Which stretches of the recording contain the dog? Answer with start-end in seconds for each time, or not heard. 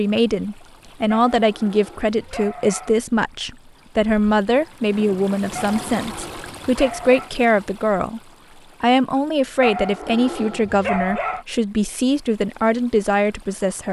1.1-3.0, 5.5-7.3, 9.6-11.4.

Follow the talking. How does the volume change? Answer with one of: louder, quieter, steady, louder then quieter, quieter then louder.
steady.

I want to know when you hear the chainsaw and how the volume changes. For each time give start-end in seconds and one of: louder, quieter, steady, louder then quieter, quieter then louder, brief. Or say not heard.
not heard.